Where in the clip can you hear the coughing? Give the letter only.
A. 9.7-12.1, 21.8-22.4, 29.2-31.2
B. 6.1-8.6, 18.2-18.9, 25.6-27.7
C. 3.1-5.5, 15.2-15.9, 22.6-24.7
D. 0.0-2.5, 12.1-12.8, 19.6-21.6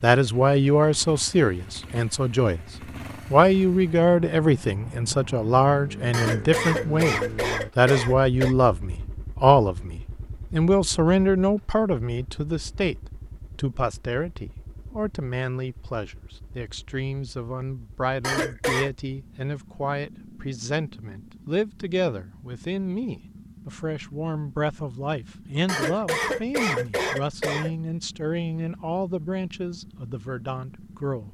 B.